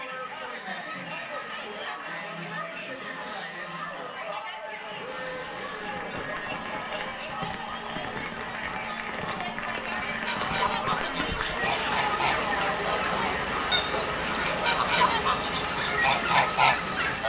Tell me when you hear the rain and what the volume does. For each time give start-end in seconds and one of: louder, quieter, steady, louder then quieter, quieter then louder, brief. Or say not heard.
5.0-17.2 louder.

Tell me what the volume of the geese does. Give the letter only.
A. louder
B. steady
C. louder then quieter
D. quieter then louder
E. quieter
A.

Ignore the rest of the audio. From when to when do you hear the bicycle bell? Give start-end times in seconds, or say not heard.
5.6-7.2.